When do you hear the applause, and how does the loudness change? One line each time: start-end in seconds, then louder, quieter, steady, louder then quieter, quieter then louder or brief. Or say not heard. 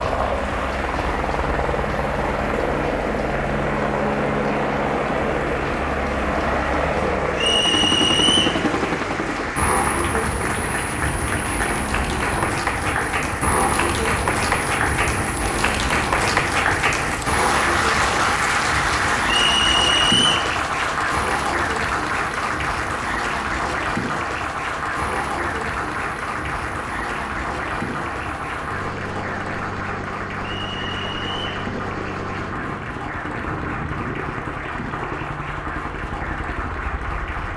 0.0-37.5 louder then quieter.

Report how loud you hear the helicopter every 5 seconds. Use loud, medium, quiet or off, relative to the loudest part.
loud, loud, loud, medium, medium, medium, medium, medium.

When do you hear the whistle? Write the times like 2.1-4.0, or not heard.
7.3-8.6, 19.2-20.5, 30.6-31.6.